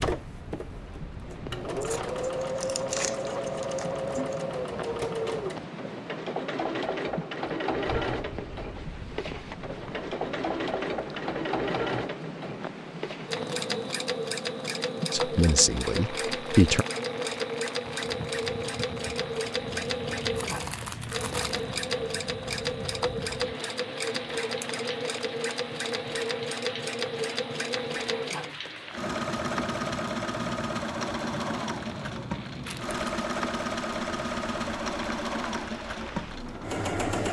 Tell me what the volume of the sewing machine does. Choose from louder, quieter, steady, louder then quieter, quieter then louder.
steady.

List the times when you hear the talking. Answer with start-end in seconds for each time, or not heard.
15.1-16.9.